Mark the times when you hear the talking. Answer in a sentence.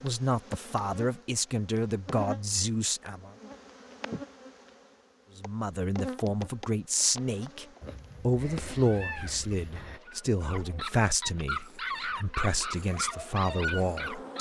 The talking can be heard from 0.0 to 3.3 s and from 5.3 to 14.3 s.